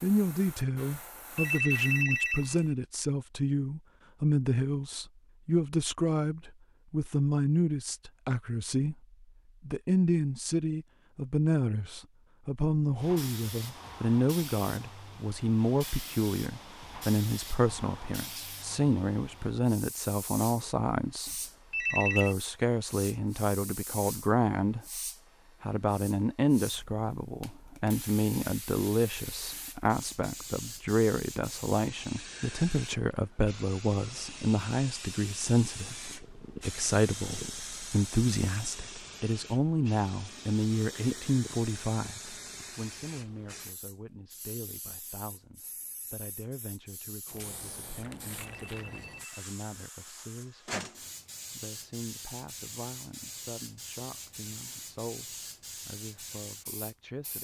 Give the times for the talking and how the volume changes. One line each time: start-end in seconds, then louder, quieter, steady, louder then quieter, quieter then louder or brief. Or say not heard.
0.0-8.9 steady
9.6-21.3 steady
21.9-24.9 brief
25.6-57.3 quieter.